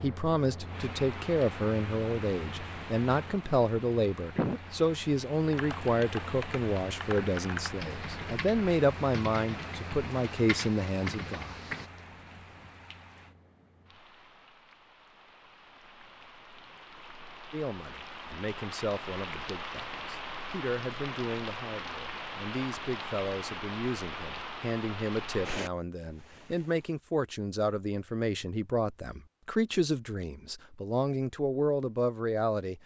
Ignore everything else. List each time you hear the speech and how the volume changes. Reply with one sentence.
The speech can be heard from 0.0 to 11.6 s, at a steady volume; and from 17.5 to 32.8 s, getting louder.